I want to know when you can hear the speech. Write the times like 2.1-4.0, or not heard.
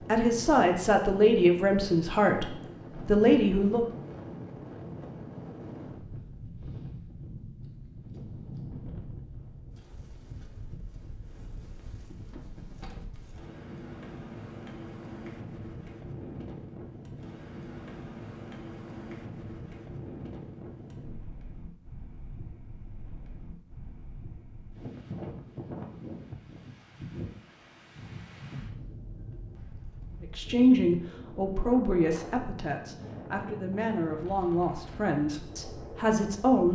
0.1-3.9, 30.2-36.7.